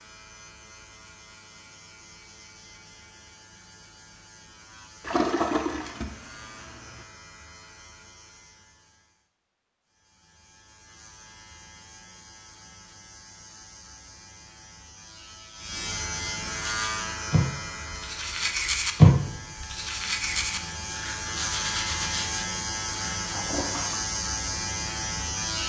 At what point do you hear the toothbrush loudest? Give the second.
19 s.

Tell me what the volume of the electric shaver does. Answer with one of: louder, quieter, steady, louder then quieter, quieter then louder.
louder.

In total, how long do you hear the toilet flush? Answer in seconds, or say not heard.
3 s.